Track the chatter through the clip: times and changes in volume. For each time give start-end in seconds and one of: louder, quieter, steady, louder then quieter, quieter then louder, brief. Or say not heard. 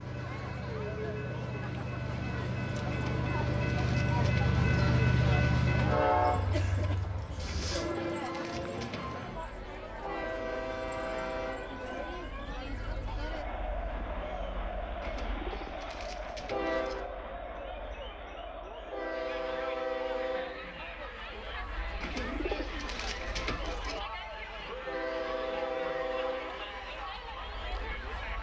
0.0-28.3 steady.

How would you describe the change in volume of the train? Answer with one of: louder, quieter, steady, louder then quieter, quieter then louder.
quieter.